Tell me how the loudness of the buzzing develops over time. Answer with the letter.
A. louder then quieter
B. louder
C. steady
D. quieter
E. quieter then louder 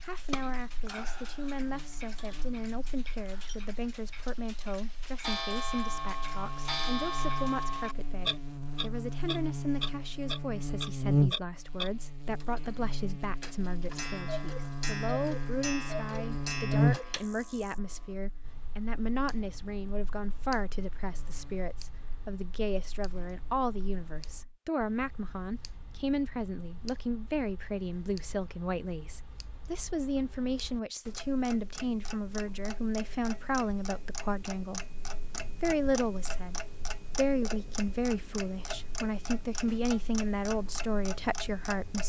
A.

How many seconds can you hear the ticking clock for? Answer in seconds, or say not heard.
42 s.